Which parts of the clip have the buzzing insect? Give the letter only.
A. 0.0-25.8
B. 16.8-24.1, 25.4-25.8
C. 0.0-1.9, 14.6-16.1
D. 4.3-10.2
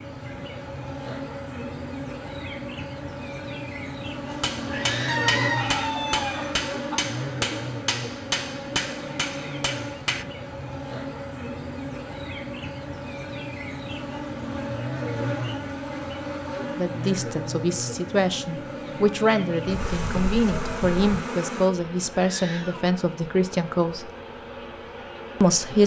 A.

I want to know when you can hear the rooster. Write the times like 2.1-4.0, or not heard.
5.0-7.0, 19.6-21.1.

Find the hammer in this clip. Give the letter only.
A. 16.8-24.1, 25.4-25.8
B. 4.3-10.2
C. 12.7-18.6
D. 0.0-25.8
B.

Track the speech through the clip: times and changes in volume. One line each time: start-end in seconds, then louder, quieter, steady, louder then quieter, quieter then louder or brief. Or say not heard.
16.8-24.1 steady
25.4-25.8 brief.